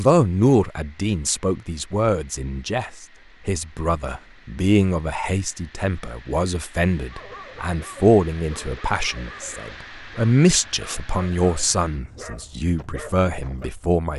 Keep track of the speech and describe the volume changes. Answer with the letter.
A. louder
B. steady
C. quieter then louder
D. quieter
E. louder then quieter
B.